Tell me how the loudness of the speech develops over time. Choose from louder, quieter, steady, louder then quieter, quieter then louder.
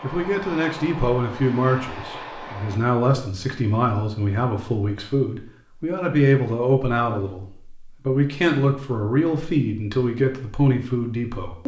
steady.